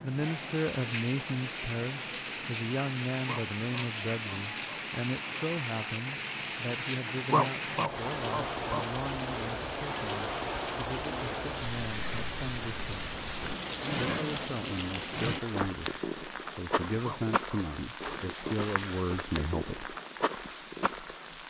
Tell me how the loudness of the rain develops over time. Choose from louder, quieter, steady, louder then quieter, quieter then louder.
steady.